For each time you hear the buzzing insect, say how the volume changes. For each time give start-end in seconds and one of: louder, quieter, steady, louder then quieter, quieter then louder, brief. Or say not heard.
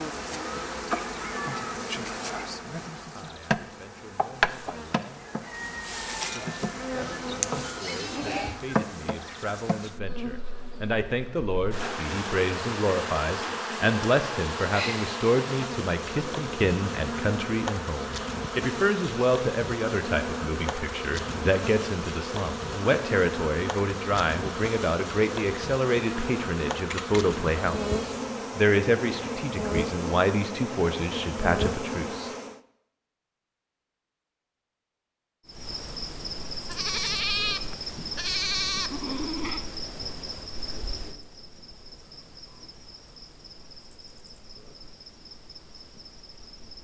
0.0-32.6 steady
35.5-46.7 quieter.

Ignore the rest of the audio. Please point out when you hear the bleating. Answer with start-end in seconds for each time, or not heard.
7.0-8.6, 26.9-28.1, 36.6-39.6.